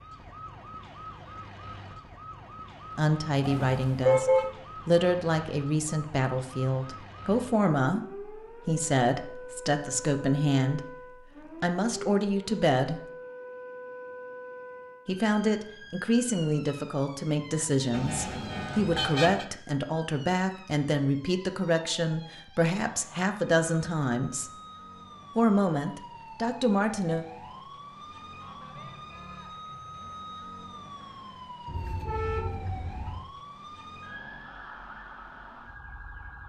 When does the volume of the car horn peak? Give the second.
4 s.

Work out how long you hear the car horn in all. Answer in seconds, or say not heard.
4 s.